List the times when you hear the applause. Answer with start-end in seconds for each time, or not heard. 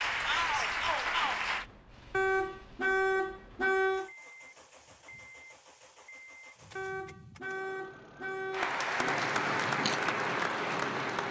0.0-1.6, 8.5-11.2.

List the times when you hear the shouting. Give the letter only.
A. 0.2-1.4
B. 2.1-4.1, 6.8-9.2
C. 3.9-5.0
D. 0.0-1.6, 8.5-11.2
A.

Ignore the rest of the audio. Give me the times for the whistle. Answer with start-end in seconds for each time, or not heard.
not heard.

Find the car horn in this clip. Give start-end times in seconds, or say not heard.
2.1-4.1, 6.8-9.2.